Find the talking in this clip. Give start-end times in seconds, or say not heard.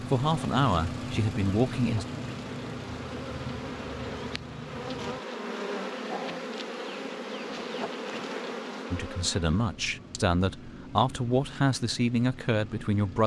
0.0-2.0, 8.9-13.2.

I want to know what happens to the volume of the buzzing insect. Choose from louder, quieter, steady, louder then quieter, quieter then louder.
louder.